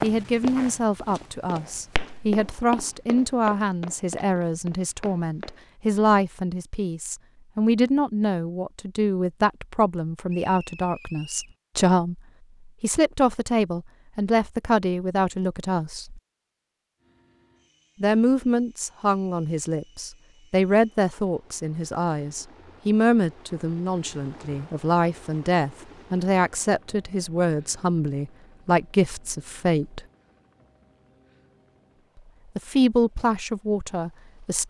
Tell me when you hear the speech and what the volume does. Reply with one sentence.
You can hear the speech from 0.0 to 16.2 s, at a steady volume; from 18.0 to 30.0 s, at a steady volume; and briefly from 32.5 to 34.6 s.